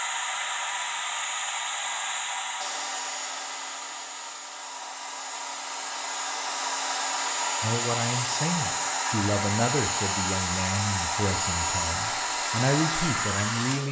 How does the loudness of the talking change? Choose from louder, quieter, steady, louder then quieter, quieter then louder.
quieter then louder.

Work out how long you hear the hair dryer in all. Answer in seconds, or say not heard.
14 s.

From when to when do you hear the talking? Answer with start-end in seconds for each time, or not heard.
7.6-13.8.